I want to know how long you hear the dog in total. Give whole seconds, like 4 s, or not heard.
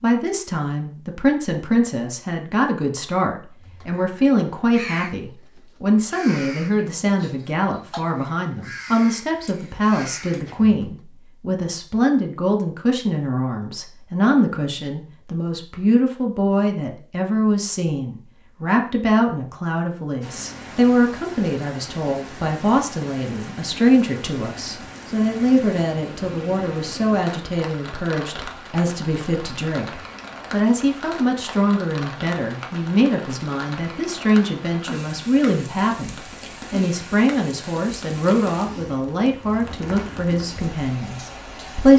not heard.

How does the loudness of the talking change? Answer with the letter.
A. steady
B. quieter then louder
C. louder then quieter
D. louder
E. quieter
A.